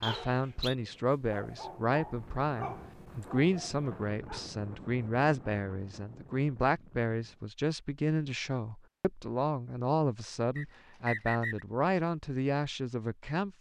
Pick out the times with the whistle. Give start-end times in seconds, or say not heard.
0.0-0.8, 10.6-11.7.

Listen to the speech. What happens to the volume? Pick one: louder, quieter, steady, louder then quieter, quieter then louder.
steady.